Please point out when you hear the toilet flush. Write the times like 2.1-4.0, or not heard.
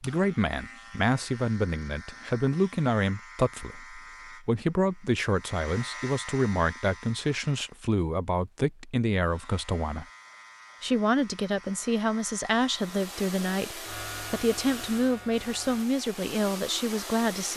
not heard.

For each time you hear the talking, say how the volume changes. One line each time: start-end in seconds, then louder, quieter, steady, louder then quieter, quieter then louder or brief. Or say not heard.
0.0-10.1 steady
10.8-17.5 steady.